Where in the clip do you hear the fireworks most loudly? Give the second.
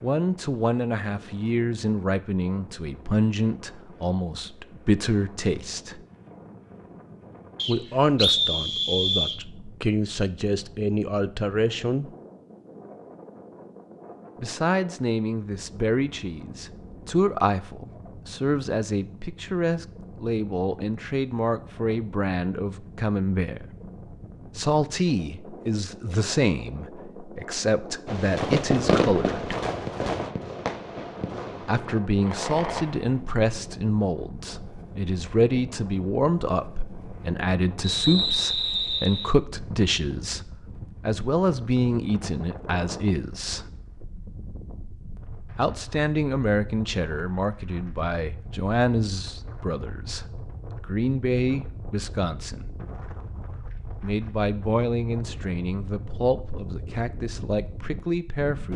29 s.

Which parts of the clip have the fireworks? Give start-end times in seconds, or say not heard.
28.1-33.2.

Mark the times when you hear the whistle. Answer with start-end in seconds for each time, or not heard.
7.5-9.4, 37.8-39.4.